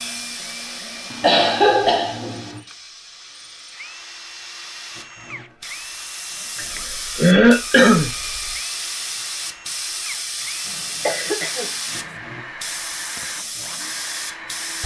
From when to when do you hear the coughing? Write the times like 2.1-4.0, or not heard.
1.2-2.6, 6.5-8.1, 10.7-12.2.